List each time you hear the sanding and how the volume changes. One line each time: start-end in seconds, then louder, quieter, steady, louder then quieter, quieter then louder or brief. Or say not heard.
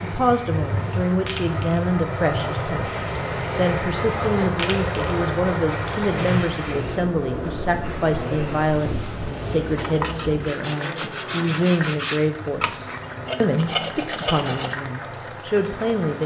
7.5-14.8 louder.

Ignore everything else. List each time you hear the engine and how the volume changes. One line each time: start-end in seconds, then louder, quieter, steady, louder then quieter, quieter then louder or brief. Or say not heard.
0.0-16.2 quieter.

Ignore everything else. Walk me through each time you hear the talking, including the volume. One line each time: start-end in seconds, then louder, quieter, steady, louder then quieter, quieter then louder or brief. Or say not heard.
0.0-16.2 steady.